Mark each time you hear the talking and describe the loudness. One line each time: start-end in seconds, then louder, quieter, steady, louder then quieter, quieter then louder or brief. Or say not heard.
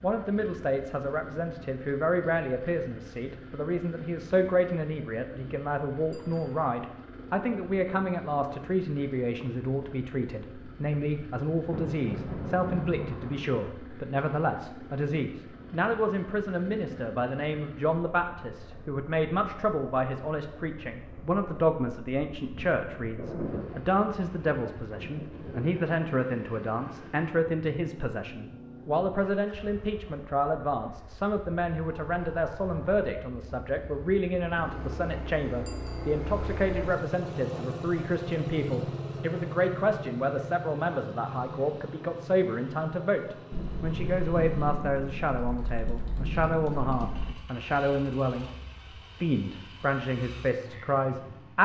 0.0-48.5 steady
49.2-51.5 brief.